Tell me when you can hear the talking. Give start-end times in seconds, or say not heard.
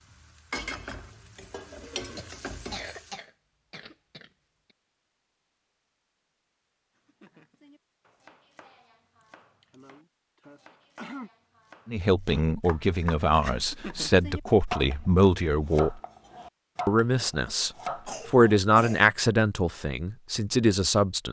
11.8-16.0, 16.9-21.2.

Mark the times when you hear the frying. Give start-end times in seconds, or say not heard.
0.0-3.2.